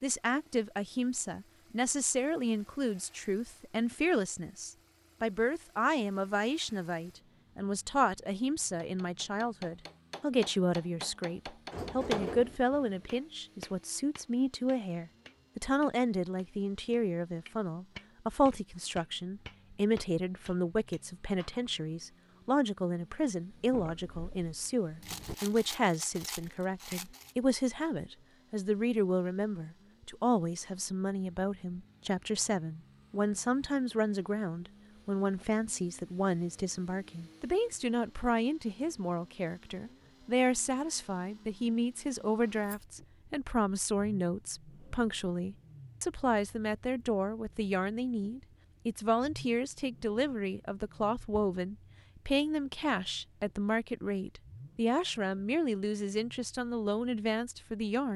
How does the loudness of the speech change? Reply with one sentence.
The loudness of the speech stays about the same.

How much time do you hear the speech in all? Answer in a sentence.
You can hear the speech for 58 seconds altogether.